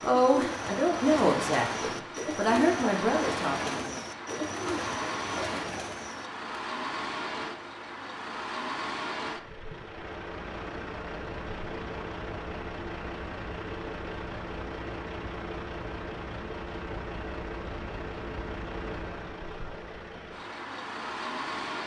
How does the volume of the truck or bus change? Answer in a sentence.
The loudness of the truck or bus stays about the same.